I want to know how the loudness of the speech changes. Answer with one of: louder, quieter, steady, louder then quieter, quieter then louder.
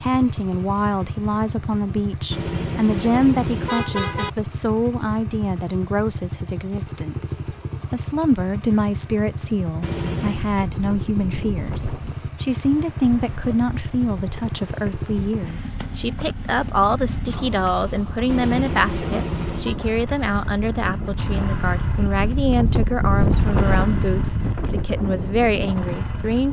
steady.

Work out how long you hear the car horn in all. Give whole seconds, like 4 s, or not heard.
4 s.